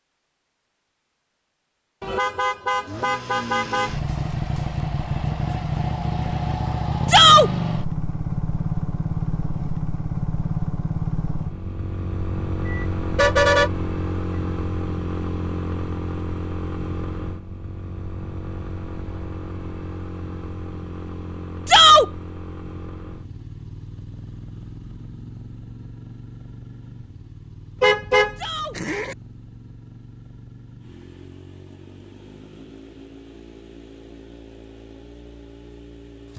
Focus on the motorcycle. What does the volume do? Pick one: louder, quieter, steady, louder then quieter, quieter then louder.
quieter.